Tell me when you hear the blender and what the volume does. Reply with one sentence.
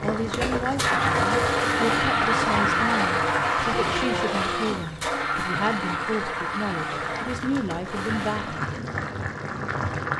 The blender can be heard from 0.2 to 8.8 s, getting quieter.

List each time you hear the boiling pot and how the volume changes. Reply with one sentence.
You can hear the boiling pot from 0.0 to 10.1 s, getting quieter then louder.